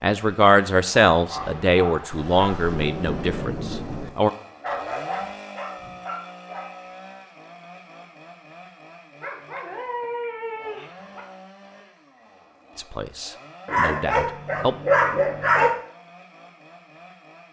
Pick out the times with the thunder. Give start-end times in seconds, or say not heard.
2.1-4.1.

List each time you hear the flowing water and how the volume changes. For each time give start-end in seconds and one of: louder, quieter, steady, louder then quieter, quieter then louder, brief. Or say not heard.
not heard.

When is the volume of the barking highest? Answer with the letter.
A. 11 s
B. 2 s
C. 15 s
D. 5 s
C.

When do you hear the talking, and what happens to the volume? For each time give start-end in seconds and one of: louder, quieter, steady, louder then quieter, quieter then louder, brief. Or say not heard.
0.0-4.3 quieter
12.8-14.8 brief.